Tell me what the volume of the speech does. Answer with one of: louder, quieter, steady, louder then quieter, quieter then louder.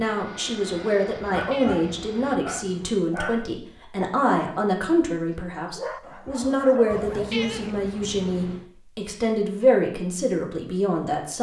steady.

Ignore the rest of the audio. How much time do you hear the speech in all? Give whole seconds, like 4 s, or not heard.
11 s.